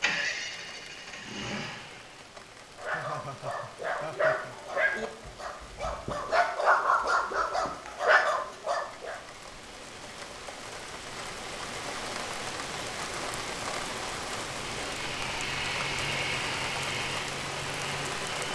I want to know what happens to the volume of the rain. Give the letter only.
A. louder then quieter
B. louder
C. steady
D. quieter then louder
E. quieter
B.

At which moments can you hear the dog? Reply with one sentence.
You can hear the dog from 2.8 to 9.2 s.